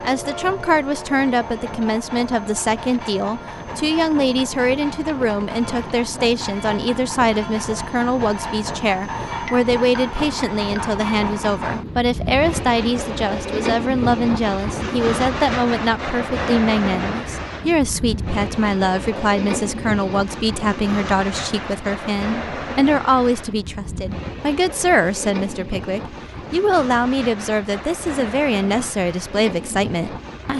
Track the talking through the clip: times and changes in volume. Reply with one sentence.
You can hear the talking from 0.0 to 30.5 s, at a steady volume.